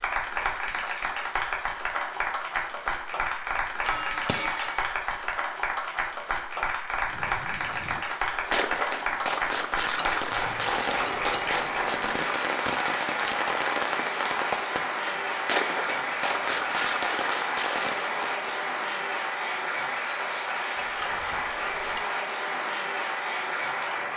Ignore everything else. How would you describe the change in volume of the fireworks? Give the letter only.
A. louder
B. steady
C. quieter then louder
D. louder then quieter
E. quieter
B.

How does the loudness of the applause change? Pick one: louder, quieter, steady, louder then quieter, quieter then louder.
steady.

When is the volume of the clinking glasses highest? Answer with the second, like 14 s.
4 s.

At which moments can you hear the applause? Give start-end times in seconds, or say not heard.
0.0-24.1.